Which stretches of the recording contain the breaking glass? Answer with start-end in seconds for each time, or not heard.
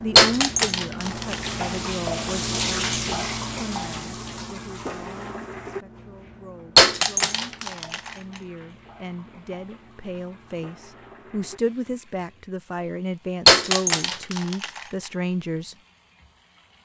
0.1-1.5, 6.8-8.1, 13.4-14.8.